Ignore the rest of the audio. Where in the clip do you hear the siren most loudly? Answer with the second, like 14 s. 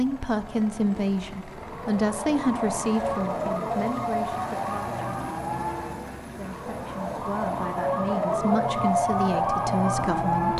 9 s.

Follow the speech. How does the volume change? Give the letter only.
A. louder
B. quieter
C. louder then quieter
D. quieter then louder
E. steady
D.